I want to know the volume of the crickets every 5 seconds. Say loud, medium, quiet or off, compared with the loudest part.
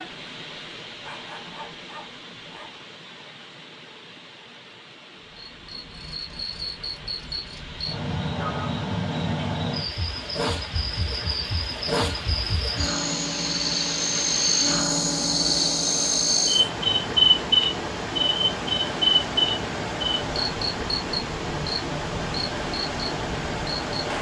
off, medium, medium, loud, quiet.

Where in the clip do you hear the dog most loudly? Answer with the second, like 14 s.
1 s.